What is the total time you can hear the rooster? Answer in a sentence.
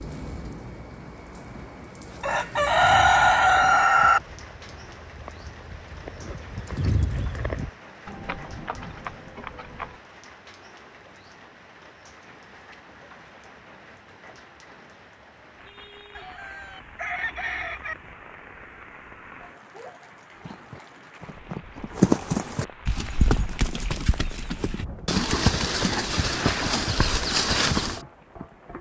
You can hear the rooster for 4 seconds altogether.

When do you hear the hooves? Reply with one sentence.
You can hear the hooves from 2.6 to 10.0 s and from 20.4 to 28.0 s.